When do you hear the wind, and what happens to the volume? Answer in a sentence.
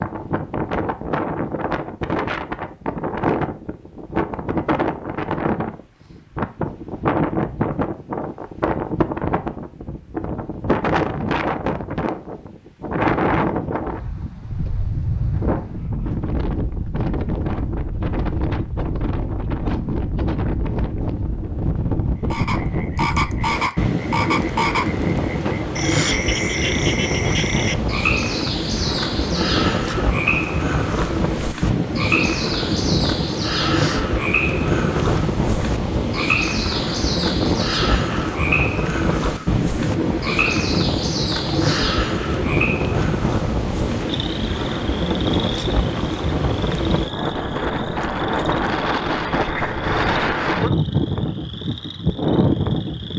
The wind can be heard from 0.0 to 53.1 s, at a steady volume.